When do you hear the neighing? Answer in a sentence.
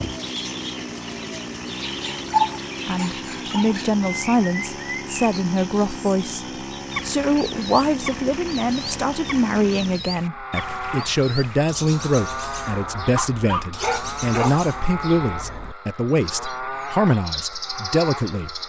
The neighing can't be heard in this clip.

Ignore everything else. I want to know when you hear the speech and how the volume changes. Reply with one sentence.
You can hear the speech from 2.9 to 18.6 s, at a steady volume.